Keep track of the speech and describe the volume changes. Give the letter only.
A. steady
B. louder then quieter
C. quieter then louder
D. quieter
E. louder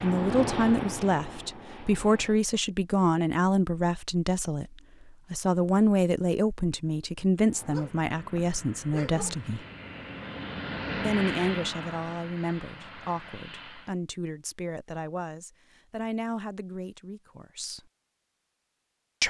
D.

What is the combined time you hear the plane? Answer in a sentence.
You can hear the plane for 9 seconds altogether.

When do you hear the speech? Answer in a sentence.
You can hear the speech from 0.0 to 9.7 s and from 11.0 to 17.9 s.